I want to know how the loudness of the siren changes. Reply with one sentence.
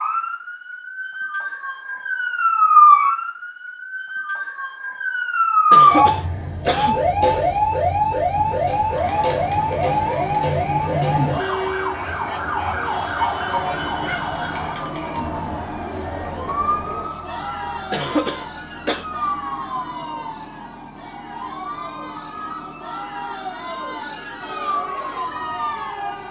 The loudness of the siren goes down.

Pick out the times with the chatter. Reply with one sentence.
You can hear the chatter from 8.8 to 26.2 s.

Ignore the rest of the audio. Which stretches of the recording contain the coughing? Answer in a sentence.
The coughing can be heard from 5.7 to 7.1 s and from 17.9 to 19.1 s.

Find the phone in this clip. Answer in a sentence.
You can't hear the phone here.